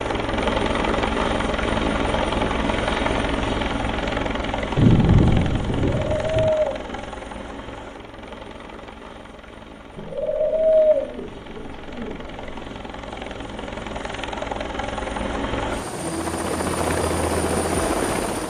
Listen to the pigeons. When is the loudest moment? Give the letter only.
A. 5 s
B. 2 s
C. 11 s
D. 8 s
C.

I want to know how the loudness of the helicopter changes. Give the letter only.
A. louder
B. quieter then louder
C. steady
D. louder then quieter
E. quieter
B.